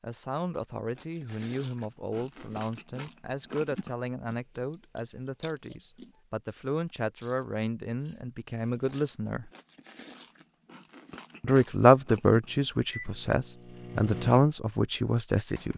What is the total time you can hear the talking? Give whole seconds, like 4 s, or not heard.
14 s.